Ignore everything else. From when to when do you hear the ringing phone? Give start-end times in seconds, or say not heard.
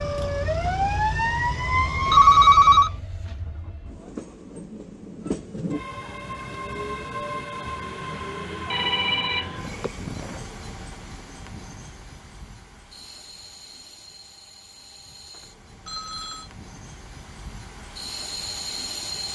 2.0-2.9, 8.7-9.9, 15.8-16.5.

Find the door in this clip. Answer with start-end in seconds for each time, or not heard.
not heard.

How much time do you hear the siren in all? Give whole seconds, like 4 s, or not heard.
3 s.